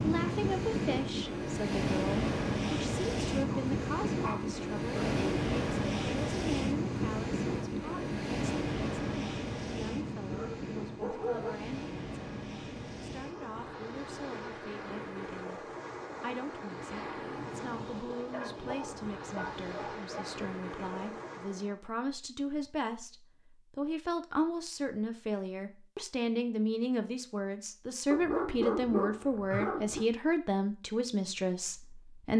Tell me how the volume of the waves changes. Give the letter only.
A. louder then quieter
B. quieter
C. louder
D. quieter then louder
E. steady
B.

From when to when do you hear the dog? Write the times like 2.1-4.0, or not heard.
3.5-5.2, 10.3-11.6, 18.3-20.2, 28.1-30.1.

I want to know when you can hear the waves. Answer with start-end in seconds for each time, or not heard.
0.0-21.8.